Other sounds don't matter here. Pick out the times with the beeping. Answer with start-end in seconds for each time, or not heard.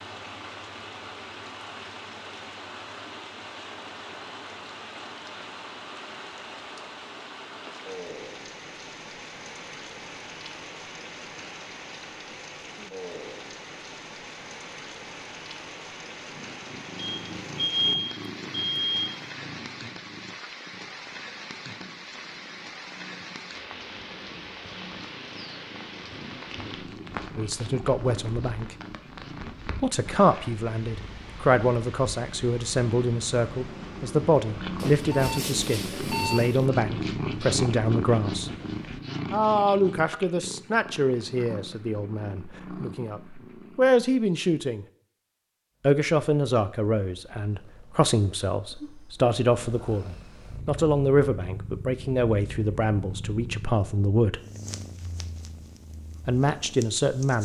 16.9-19.3, 34.8-36.7.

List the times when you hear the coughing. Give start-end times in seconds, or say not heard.
not heard.